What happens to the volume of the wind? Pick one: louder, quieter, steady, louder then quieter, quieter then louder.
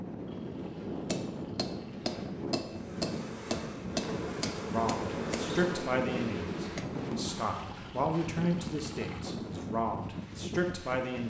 steady.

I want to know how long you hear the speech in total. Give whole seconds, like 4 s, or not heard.
7 s.